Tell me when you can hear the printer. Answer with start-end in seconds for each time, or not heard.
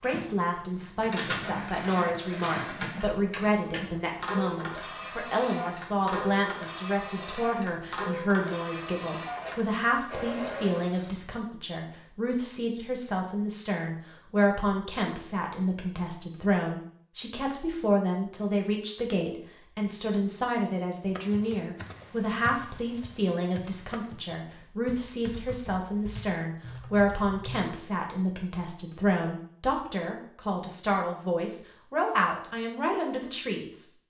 0.0-11.1.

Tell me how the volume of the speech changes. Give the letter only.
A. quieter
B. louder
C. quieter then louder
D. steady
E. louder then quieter
D.